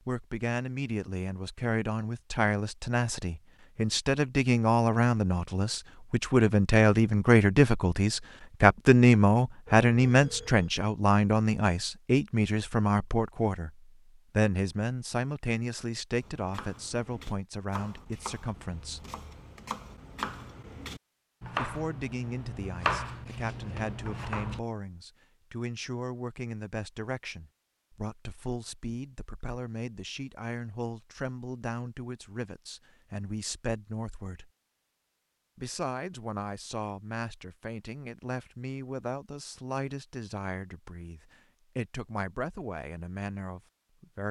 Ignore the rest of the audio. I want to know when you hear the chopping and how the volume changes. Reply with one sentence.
The chopping can be heard from 16.2 to 24.6 s, getting louder.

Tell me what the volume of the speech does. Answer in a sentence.
The volume of the speech goes down.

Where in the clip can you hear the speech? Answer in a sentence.
You can hear the speech from 0.1 to 19.1 s, from 21.5 to 34.5 s and from 35.5 to 44.2 s.